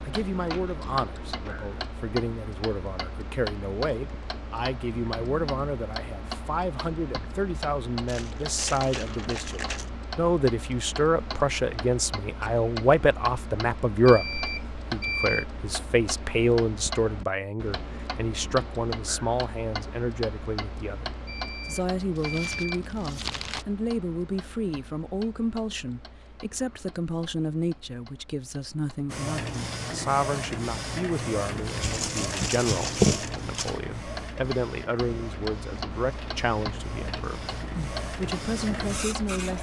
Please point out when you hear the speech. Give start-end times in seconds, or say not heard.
0.1-39.5.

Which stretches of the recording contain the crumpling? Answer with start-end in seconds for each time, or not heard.
8.1-9.9, 22.1-23.6, 31.8-33.7.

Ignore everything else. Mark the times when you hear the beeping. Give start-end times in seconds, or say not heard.
14.1-15.4, 21.2-22.8.